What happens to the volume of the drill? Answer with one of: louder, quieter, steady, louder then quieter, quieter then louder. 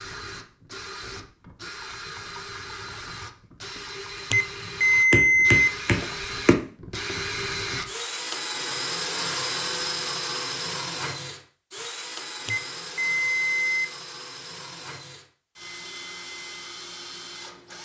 louder then quieter.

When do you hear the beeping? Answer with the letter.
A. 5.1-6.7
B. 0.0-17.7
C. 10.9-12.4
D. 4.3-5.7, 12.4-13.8
D.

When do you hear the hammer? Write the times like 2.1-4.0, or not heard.
5.1-6.7.